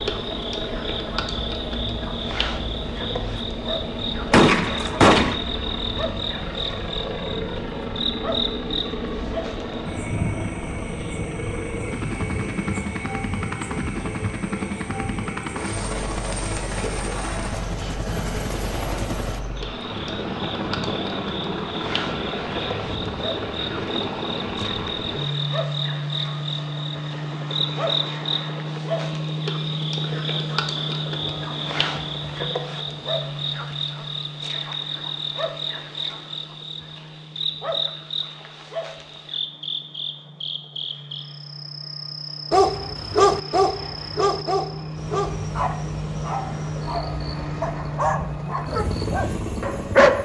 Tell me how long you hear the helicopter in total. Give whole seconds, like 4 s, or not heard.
50 s.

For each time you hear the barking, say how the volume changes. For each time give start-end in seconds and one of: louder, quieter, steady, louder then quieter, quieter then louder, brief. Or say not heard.
42.5-50.1 quieter.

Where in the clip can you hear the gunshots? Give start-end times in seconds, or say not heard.
4.3-5.3.